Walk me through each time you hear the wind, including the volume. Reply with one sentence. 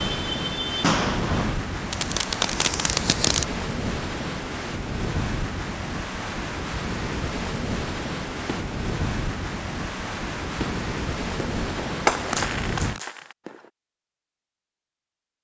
You can hear the wind from 0.0 to 13.0 s, at a steady volume.